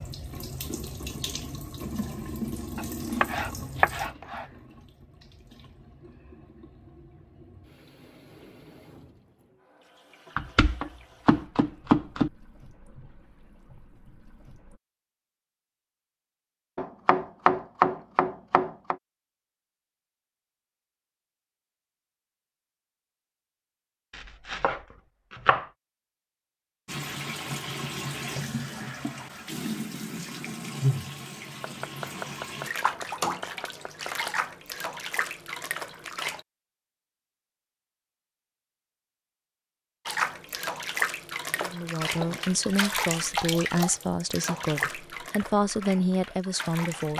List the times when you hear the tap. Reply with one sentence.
You can hear the tap from 0.0 to 14.8 s, from 26.9 to 36.5 s and from 40.0 to 47.1 s.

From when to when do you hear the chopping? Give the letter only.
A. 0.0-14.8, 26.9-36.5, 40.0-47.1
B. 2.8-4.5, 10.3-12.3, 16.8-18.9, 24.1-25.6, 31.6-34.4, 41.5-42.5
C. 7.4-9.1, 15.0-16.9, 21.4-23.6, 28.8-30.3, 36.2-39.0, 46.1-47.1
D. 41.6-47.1
B.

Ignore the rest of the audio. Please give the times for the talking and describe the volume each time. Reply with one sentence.
The talking can be heard from 41.6 to 47.1 s, at a steady volume.